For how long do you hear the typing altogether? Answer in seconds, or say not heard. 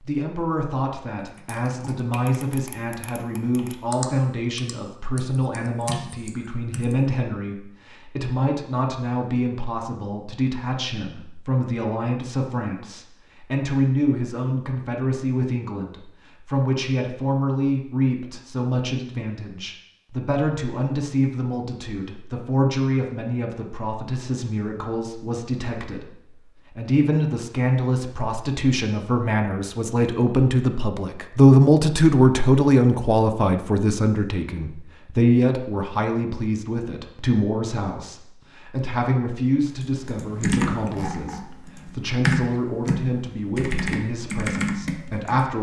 11 s.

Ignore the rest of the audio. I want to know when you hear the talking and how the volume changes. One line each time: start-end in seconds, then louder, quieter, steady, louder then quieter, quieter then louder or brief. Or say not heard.
0.0-45.5 louder then quieter.